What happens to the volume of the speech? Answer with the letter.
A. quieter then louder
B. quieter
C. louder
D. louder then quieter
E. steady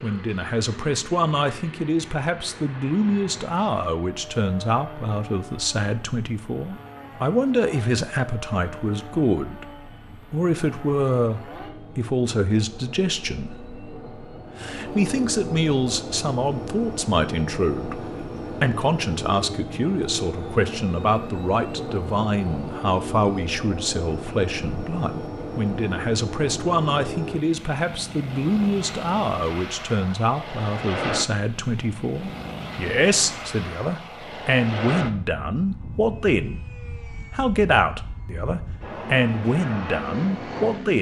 E.